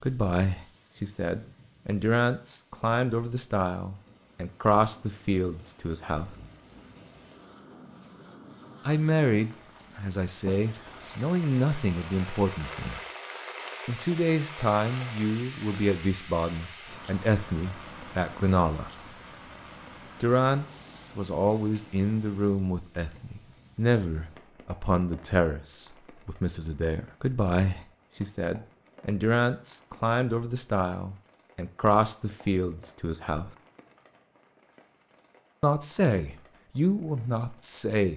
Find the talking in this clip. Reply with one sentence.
You can hear the talking from 0.0 to 6.3 s, from 8.8 to 13.0 s, from 13.8 to 18.9 s, from 20.2 to 33.5 s and from 35.6 to 38.1 s.